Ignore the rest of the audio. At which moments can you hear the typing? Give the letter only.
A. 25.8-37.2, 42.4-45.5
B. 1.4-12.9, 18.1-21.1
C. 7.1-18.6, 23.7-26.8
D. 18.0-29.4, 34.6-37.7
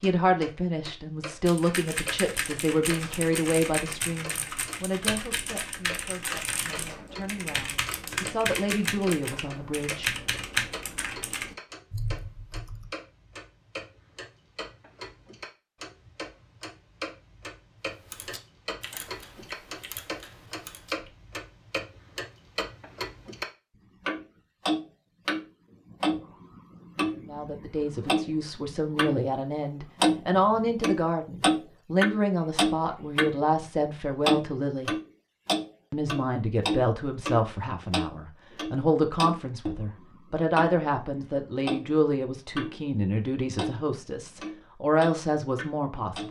B.